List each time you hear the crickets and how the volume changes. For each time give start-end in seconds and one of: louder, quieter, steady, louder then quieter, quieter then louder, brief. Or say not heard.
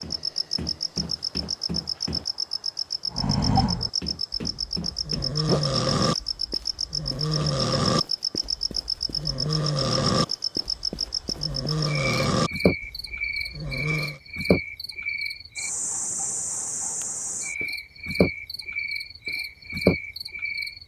0.0-20.8 steady.